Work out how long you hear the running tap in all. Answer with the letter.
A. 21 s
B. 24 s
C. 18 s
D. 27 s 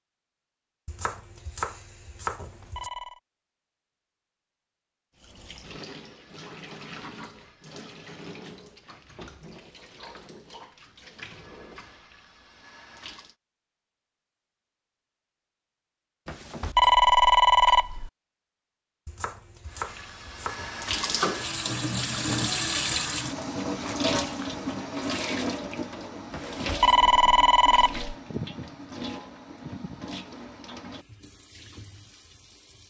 A.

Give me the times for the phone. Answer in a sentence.
You can hear the phone from 2.4 to 3.2 s, from 16.2 to 18.1 s and from 26.3 to 28.1 s.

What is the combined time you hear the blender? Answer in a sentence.
The blender can't be heard in this clip.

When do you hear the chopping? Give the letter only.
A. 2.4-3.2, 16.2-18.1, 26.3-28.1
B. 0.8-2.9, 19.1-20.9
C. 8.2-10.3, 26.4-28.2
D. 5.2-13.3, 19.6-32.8
B.